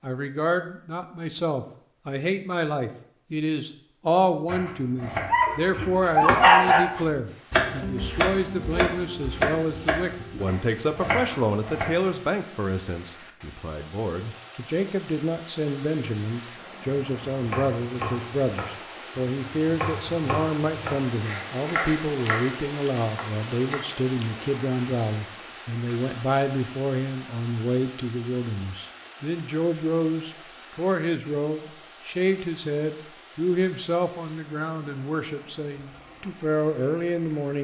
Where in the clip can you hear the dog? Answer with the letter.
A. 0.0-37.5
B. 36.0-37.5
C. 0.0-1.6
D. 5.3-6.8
D.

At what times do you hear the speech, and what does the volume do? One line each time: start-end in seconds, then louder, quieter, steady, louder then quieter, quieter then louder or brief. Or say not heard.
0.0-37.5 steady.